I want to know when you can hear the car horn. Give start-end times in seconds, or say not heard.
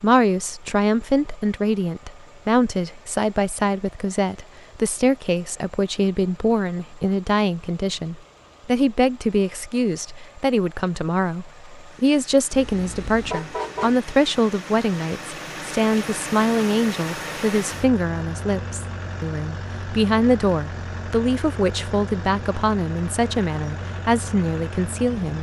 12.5-14.0.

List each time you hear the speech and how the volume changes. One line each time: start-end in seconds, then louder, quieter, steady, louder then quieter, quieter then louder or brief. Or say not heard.
0.0-25.3 steady.